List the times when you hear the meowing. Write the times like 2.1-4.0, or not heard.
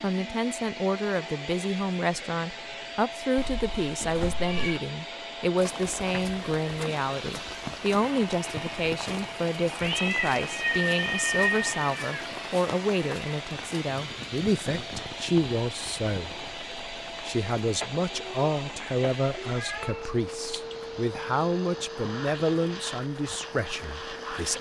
3.4-4.8, 9.8-12.2, 18.1-18.6, 19.4-20.8.